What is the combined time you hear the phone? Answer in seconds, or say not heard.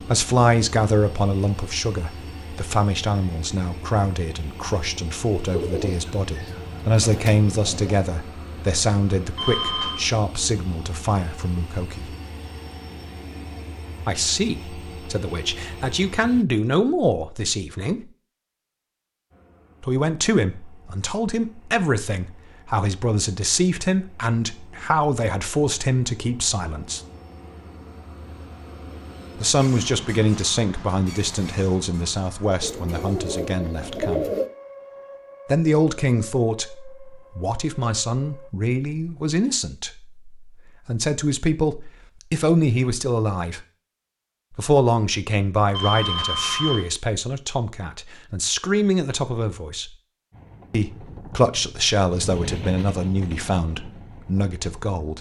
2 s.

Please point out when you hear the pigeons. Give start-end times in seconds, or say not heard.
5.3-8.1, 32.6-34.5.